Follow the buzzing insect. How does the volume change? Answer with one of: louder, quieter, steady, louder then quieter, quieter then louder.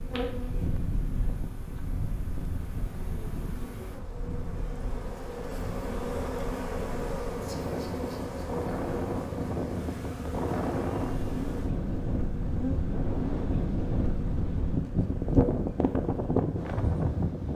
louder then quieter.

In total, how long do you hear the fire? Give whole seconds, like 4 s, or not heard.
not heard.